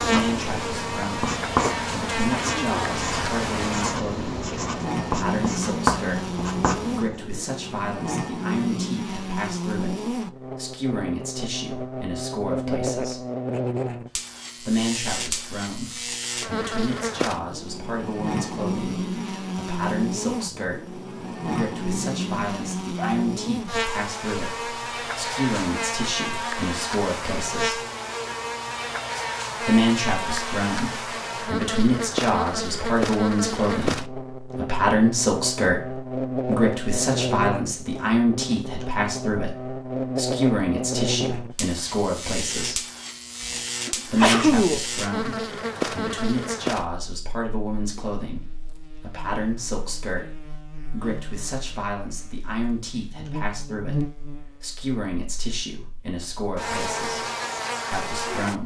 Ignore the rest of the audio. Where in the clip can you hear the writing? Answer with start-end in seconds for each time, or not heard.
0.0-7.2.